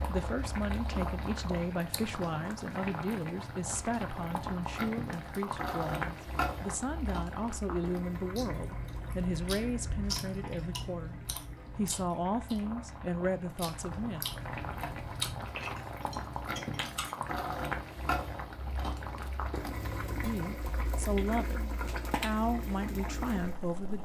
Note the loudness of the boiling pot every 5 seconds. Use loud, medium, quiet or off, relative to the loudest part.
loud, loud, medium, loud, loud.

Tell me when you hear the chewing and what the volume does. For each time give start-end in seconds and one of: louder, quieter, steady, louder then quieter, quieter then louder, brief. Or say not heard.
8.3-17.1 quieter then louder.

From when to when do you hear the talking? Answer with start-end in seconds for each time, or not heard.
0.0-14.2, 20.1-24.0.